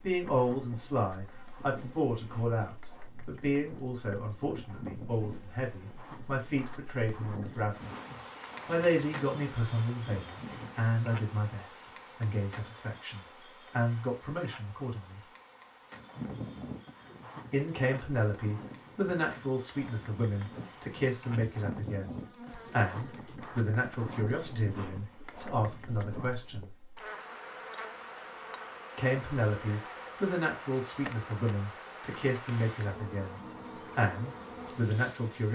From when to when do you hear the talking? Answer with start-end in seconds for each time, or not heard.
0.0-7.9, 8.7-15.2, 17.5-26.7, 28.9-35.5.